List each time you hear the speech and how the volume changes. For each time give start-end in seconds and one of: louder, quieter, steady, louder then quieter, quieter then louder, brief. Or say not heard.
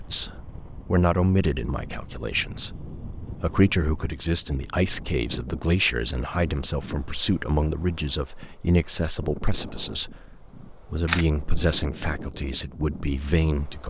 0.0-13.8 steady.